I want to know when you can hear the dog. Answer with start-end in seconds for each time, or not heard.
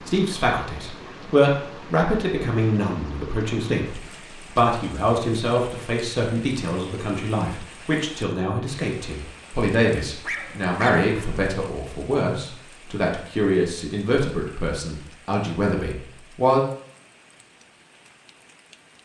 10.2-11.1.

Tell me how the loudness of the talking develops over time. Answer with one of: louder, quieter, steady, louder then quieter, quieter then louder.
steady.